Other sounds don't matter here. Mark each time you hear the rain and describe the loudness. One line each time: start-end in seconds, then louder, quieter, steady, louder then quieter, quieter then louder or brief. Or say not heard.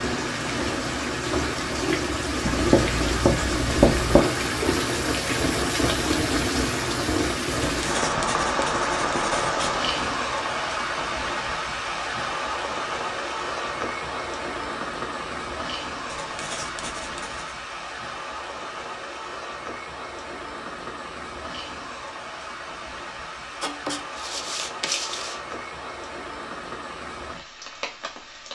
0.0-28.5 quieter.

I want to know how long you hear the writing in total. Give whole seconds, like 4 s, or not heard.
7 s.